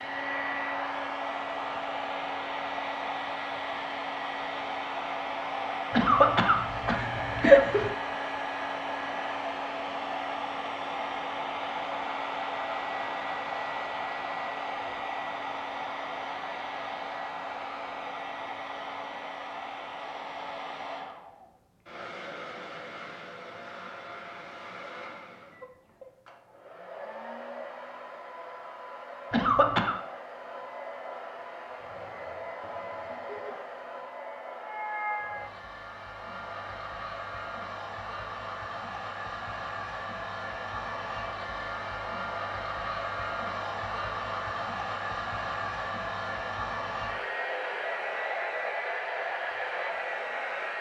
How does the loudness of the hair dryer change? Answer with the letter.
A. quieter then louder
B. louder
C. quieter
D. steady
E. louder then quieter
A.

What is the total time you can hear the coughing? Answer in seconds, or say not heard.
3 s.